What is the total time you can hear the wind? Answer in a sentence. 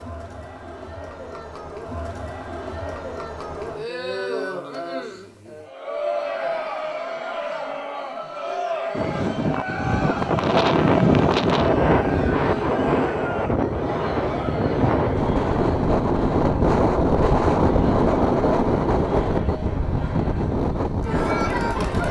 You can hear the wind for 13 seconds altogether.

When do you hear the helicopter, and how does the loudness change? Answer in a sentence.
You can't hear the helicopter here.